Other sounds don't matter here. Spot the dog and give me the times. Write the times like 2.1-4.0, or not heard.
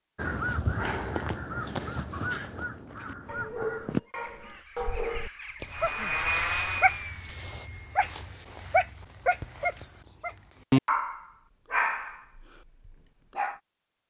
2.1-13.6.